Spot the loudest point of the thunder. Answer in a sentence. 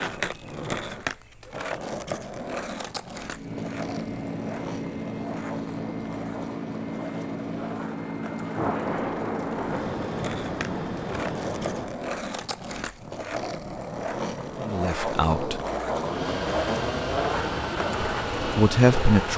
The loudest moment of the thunder is at 9 seconds.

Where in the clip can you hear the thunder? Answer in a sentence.
You can hear the thunder from 8.6 to 11.9 s.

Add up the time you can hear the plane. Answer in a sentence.
The plane can be heard for 12 seconds in total.